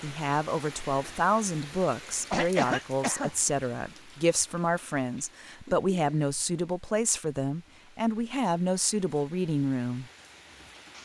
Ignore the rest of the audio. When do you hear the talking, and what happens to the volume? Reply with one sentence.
The talking can be heard from 0.0 to 10.1 s, at a steady volume.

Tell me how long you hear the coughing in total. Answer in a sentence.
The coughing can be heard for 2 seconds in total.